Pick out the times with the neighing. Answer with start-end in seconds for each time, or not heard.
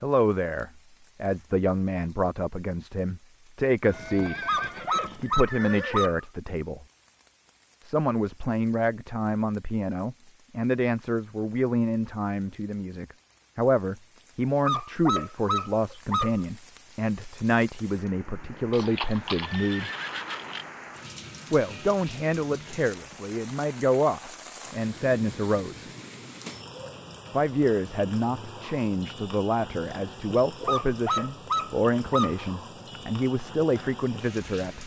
3.8-6.1, 18.7-20.7.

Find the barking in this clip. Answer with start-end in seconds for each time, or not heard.
4.5-6.2, 14.6-16.4, 30.6-32.5.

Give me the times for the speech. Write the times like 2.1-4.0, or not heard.
0.0-4.5, 5.2-6.8, 7.8-19.9, 21.5-25.9, 27.3-34.8.